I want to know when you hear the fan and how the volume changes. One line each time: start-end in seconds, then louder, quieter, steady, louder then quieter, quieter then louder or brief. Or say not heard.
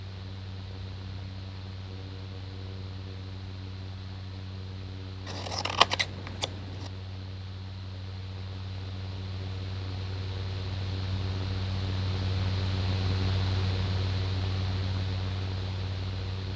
0.0-16.5 louder.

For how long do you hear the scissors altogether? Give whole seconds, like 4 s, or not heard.
2 s.